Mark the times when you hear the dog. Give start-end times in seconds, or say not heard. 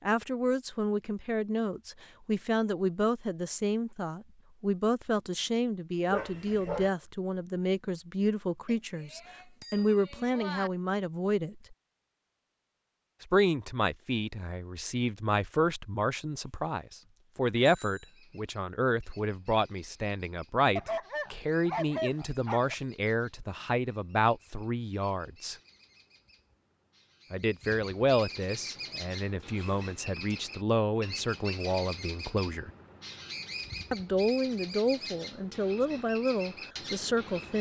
6.1-6.9, 20.8-22.8.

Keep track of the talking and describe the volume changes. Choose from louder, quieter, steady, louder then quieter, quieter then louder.
steady.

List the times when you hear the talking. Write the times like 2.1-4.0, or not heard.
0.0-11.8, 13.2-25.6, 27.3-32.7, 33.9-37.5.